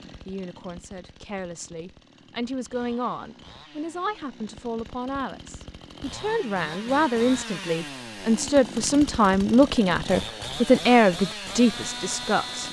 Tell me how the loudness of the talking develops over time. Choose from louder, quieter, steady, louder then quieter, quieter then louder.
louder.